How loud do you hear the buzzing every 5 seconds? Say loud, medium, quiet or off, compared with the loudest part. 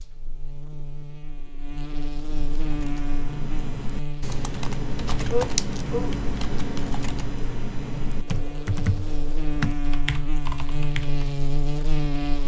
medium, medium, loud.